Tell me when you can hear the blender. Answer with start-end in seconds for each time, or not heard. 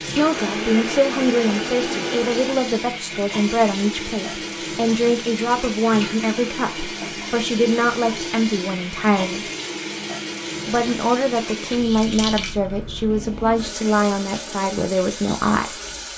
0.1-2.6.